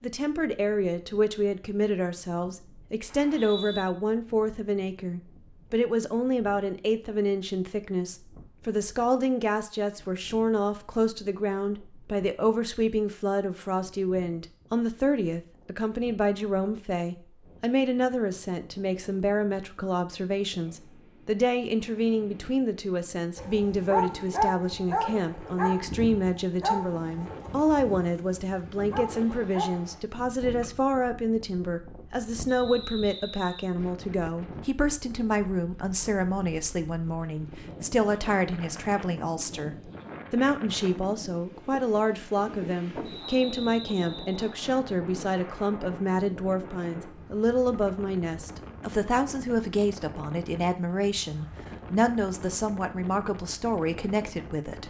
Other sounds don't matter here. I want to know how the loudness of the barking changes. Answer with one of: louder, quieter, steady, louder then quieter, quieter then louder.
quieter then louder.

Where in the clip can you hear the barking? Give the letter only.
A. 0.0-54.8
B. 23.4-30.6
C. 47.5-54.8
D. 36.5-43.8
B.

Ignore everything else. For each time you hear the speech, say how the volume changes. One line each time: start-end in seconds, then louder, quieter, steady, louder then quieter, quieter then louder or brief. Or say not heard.
0.0-54.8 steady.